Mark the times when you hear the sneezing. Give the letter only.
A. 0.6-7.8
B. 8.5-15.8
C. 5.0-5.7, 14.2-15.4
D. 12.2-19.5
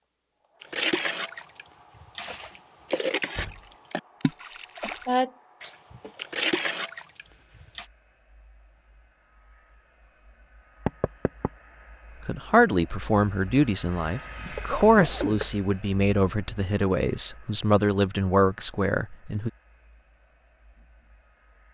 C.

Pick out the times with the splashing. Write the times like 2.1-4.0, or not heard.
0.6-7.8.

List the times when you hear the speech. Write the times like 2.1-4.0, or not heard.
12.2-19.5.